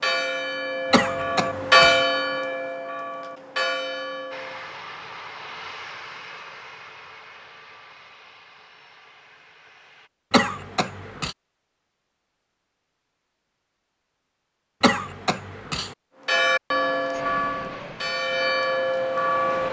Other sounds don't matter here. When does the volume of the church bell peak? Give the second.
2 s.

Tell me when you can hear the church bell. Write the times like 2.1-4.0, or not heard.
0.0-4.7, 16.2-19.6.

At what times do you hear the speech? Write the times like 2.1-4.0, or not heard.
not heard.